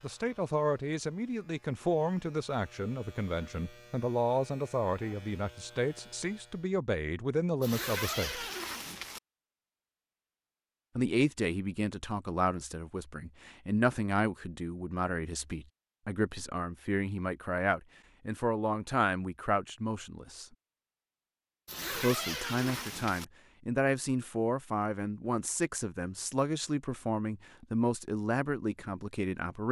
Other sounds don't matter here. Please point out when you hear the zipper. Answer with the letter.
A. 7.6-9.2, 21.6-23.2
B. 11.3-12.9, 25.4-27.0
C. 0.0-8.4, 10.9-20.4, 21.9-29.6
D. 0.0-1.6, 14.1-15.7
A.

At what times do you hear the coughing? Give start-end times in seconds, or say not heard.
not heard.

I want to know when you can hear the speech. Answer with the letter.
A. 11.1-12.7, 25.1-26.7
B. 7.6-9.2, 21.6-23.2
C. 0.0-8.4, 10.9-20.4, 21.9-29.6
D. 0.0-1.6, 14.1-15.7
C.